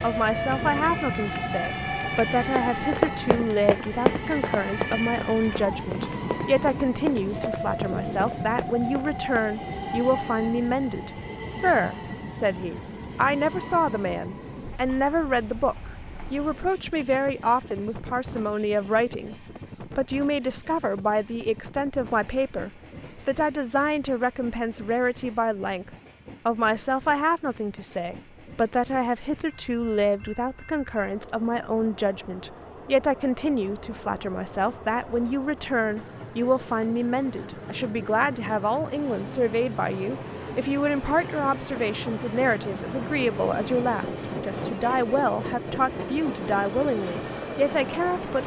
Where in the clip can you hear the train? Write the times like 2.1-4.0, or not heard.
0.0-48.4.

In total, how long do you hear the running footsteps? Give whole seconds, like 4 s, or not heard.
7 s.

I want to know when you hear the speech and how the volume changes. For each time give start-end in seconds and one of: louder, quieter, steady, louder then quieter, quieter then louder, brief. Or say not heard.
0.0-48.4 steady.